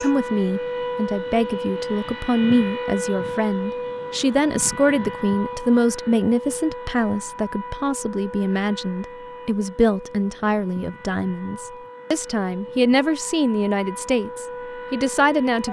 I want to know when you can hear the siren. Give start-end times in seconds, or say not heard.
0.0-15.6.